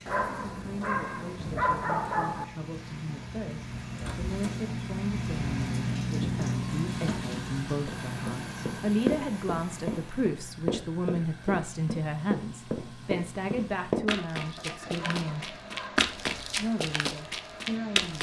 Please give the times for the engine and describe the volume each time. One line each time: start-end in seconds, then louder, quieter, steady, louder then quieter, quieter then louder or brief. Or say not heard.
0.0-18.1 louder then quieter.